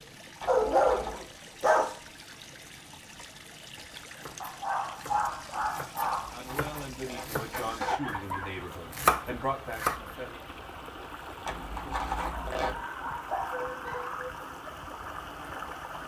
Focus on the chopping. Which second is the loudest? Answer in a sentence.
The volume of the chopping peaks at 9 seconds.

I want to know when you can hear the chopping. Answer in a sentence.
You can hear the chopping from 4.2 to 10.0 s.